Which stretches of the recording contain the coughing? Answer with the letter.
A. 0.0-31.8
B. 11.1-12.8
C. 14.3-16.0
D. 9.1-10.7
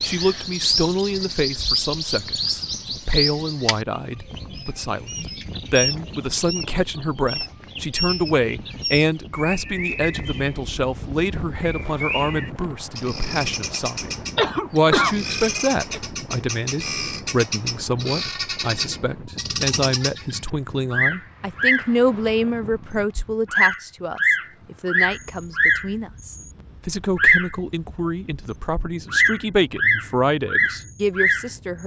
C.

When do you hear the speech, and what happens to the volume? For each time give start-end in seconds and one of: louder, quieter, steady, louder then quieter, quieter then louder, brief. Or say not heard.
0.0-31.8 steady.